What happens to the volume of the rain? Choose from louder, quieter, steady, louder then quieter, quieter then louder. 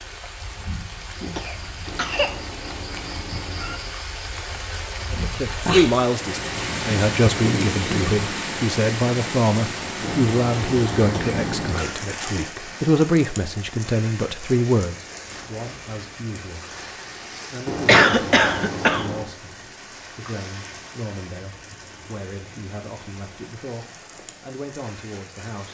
louder then quieter.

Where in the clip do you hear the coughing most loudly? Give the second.
18 s.